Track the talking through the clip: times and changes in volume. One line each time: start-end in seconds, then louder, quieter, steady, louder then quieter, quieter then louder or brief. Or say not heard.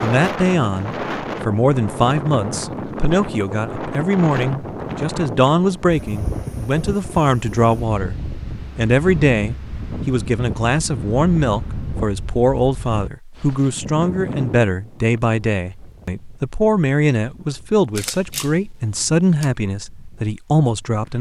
0.0-21.1 steady.